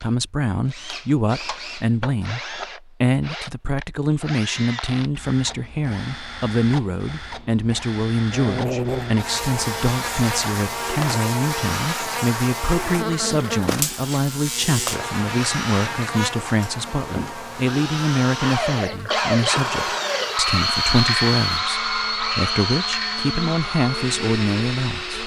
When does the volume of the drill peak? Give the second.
21 s.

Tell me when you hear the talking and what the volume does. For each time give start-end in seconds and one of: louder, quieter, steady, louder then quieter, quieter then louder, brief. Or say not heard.
0.0-25.2 steady.